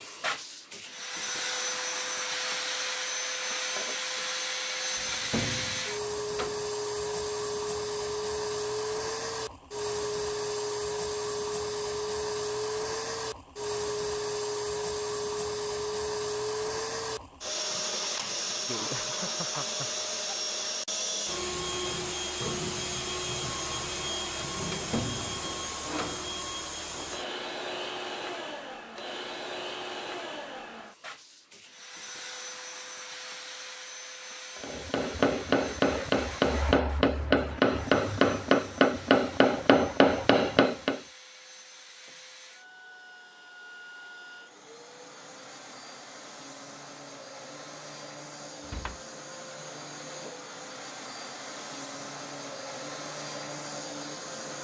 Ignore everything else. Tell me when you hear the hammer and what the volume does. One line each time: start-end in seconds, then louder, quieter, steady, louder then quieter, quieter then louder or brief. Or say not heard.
34.6-41.0 steady.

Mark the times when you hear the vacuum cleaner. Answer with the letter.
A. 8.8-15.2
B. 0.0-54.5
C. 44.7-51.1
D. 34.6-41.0
B.